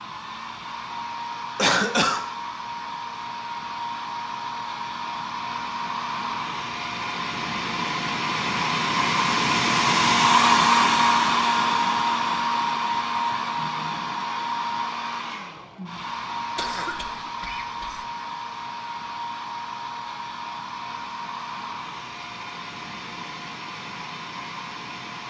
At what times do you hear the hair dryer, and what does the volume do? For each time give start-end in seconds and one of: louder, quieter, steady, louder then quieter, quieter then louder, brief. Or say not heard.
0.0-25.2 louder then quieter.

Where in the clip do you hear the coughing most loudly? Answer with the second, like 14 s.
2 s.